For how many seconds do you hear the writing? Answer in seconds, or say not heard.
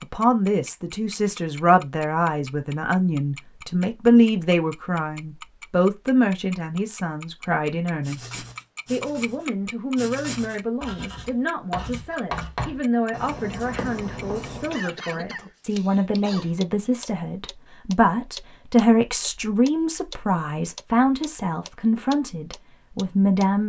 7 s.